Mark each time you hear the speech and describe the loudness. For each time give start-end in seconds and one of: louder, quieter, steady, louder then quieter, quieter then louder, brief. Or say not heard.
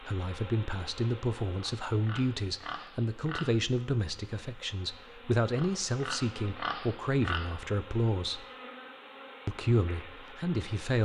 0.0-8.4 steady
9.4-10.9 brief.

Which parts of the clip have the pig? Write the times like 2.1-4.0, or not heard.
1.6-3.7, 5.5-7.7.